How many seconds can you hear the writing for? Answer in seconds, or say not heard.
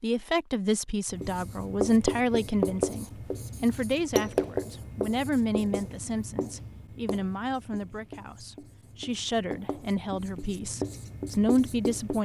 11 s.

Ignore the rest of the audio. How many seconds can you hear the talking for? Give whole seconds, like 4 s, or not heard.
12 s.